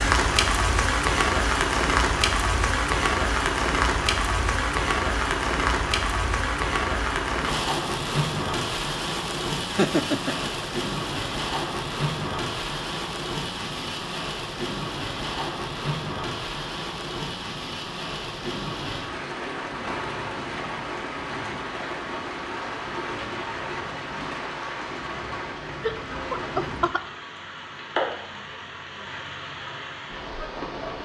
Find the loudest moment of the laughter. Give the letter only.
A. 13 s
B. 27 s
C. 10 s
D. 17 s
C.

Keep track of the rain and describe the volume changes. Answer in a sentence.
The loudness of the rain goes down.